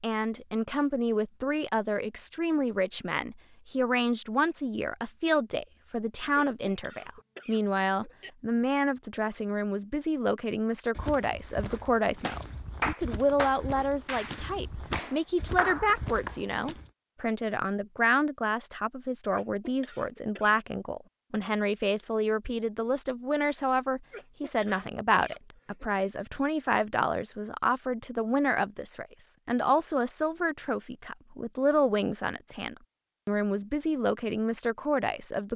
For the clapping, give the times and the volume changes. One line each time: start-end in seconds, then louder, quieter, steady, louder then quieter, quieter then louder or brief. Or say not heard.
12.2-16.4 quieter then louder.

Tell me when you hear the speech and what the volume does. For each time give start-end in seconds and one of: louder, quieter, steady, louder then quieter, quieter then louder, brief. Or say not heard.
0.0-35.5 steady.